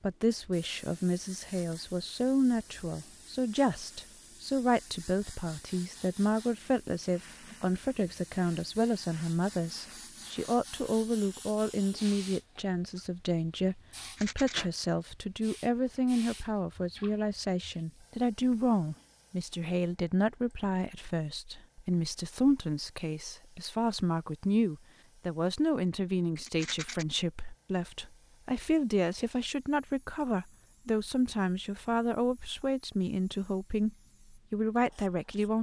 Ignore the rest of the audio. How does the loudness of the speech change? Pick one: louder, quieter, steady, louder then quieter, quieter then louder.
steady.